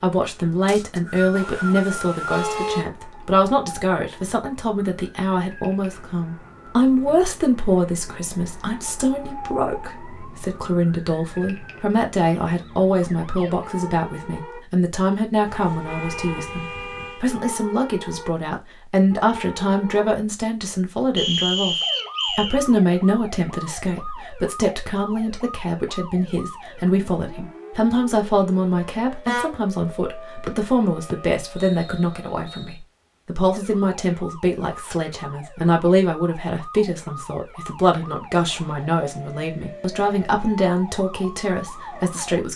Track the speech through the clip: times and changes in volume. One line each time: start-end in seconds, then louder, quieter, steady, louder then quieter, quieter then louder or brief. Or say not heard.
0.0-42.5 steady.